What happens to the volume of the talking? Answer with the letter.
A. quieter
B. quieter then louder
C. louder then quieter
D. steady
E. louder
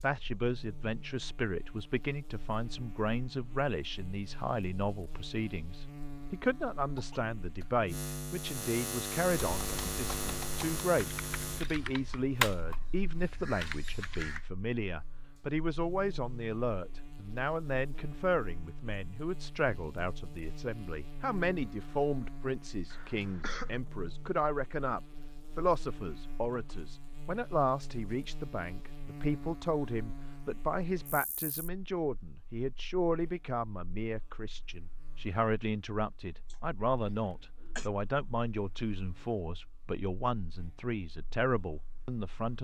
D.